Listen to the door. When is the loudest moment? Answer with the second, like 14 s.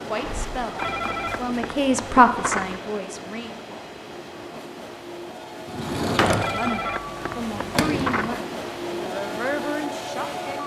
6 s.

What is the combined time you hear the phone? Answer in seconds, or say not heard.
4 s.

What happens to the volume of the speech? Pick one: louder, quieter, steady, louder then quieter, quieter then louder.
louder then quieter.